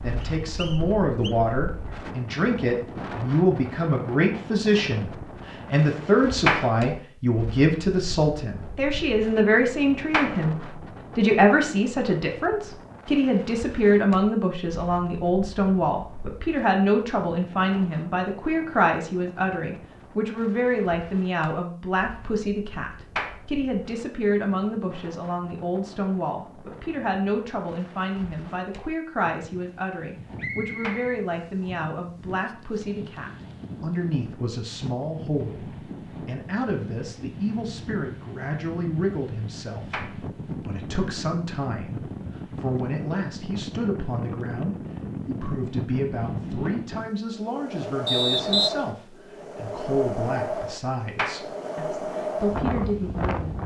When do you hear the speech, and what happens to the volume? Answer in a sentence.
The speech can be heard from 0.0 to 53.6 s, getting quieter.